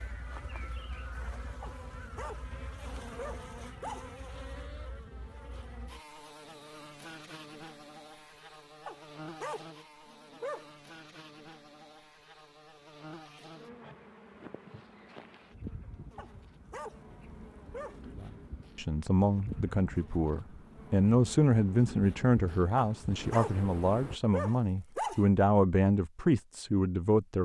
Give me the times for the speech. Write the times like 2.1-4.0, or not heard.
18.1-27.4.